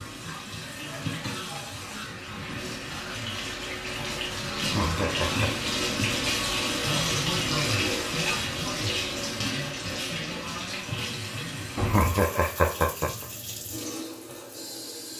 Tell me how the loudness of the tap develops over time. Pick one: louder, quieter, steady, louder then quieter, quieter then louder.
louder then quieter.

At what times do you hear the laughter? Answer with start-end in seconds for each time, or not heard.
4.5-5.5, 11.8-13.2.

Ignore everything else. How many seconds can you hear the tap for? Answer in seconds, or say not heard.
15 s.